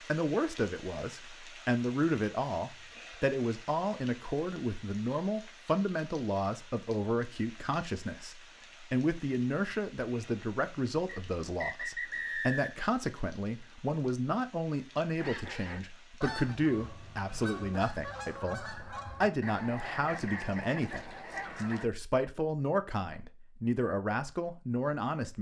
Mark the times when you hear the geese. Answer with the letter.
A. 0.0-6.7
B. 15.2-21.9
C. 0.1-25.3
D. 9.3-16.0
B.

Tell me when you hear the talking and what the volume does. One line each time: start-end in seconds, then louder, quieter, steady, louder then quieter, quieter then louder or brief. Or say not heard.
0.1-25.3 steady.